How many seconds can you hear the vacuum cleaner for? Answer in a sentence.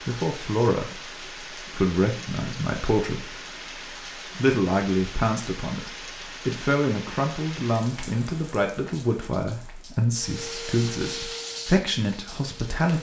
You can hear the vacuum cleaner for 3 seconds altogether.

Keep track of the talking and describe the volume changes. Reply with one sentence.
The volume of the talking stays about the same.